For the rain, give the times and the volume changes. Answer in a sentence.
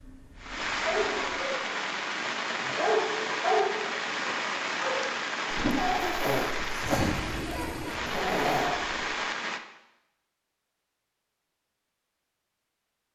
The rain can be heard from 0.0 to 9.6 s, at a steady volume.